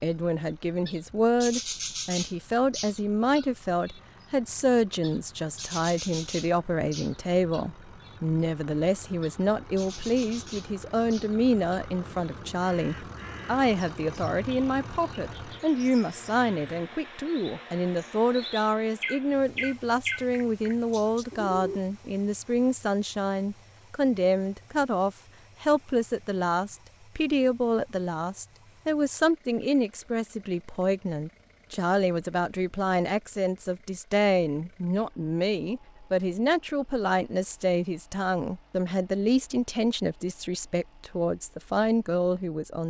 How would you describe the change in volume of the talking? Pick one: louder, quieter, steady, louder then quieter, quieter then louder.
steady.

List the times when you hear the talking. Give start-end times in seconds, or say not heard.
0.0-42.8.